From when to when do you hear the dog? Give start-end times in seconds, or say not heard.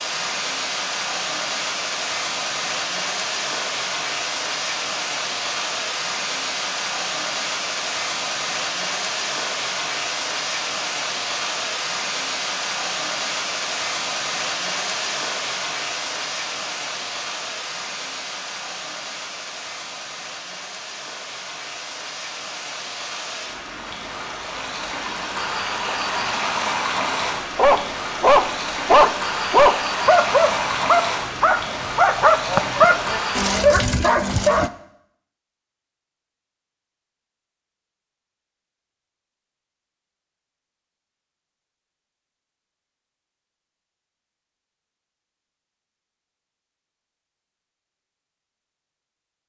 27.6-34.7.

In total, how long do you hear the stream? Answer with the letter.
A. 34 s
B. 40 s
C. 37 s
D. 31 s
A.